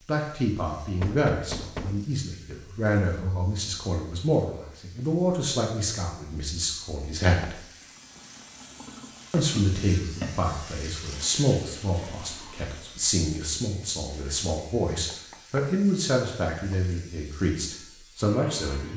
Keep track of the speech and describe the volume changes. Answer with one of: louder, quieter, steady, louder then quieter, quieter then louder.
steady.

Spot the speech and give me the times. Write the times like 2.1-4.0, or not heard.
0.1-7.6, 9.3-18.9.